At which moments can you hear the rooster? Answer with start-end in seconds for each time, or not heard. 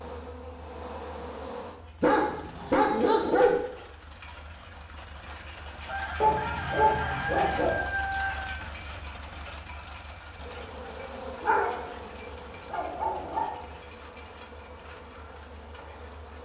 5.8-8.7.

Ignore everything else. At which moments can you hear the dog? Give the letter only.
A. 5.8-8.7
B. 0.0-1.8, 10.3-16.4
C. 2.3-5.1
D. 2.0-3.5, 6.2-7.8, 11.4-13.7
D.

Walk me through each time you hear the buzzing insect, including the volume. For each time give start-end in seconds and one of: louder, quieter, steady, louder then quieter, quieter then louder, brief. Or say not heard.
0.0-1.8 brief
10.3-16.4 quieter.